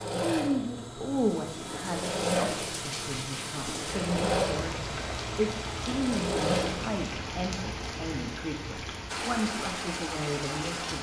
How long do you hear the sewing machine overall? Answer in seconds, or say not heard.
7 s.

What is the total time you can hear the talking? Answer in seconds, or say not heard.
11 s.